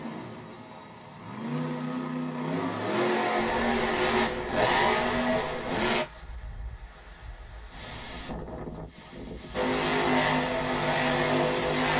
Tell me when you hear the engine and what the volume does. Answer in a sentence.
The engine can be heard from 0.0 to 6.0 s, getting louder; and briefly from 9.5 to 11.9 s.